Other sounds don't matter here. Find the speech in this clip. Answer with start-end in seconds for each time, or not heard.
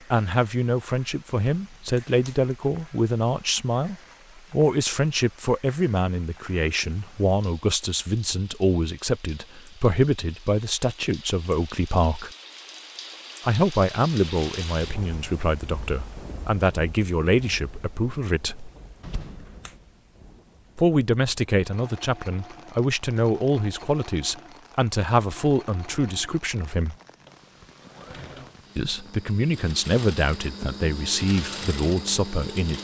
0.1-12.3, 13.4-18.7, 20.8-26.9, 28.8-32.7.